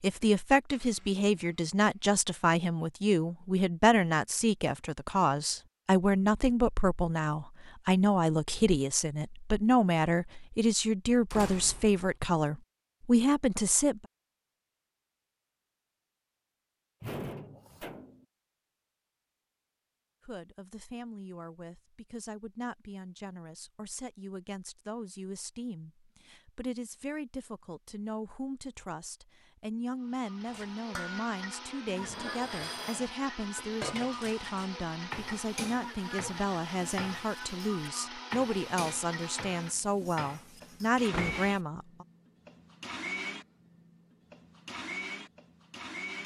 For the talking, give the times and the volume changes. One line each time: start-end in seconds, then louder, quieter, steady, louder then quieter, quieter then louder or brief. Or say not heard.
0.0-14.1 steady
20.2-42.0 louder.